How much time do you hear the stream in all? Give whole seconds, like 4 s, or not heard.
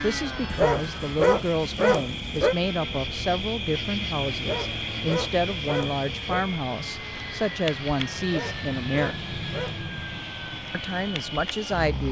not heard.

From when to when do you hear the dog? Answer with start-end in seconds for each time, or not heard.
0.5-2.5, 4.3-6.5, 8.2-9.8.